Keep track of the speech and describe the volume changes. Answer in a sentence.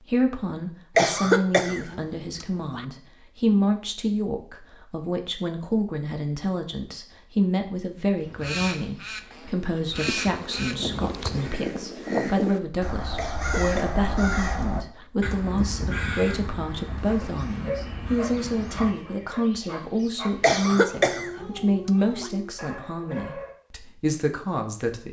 The loudness of the speech stays about the same.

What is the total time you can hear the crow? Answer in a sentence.
The crow can be heard for 11 seconds in total.